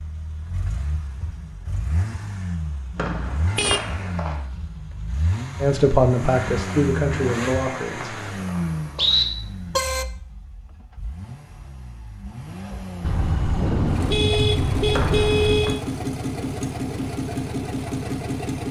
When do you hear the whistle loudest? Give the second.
9 s.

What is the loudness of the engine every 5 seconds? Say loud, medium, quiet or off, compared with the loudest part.
medium, loud, medium, loud.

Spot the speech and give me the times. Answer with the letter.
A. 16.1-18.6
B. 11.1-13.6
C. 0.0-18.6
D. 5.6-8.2
D.